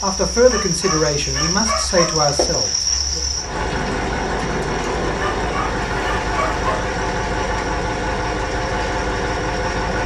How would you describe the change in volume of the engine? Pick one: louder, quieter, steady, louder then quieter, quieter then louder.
steady.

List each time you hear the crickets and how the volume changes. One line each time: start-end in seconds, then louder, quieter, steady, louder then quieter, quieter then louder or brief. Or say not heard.
0.0-10.0 quieter.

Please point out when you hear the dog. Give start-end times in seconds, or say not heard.
0.5-2.4, 5.2-6.8.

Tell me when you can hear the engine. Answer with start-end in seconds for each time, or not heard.
2.9-10.0.